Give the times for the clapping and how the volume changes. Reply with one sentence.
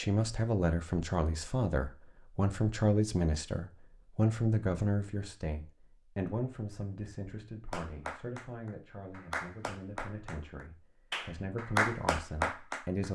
You can hear the clapping from 7.7 to 13.1 s, getting louder.